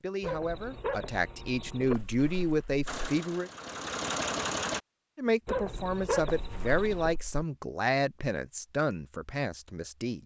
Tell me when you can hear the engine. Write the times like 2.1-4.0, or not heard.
2.9-4.8.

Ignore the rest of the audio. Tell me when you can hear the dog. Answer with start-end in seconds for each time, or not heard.
0.2-1.9, 5.5-7.2.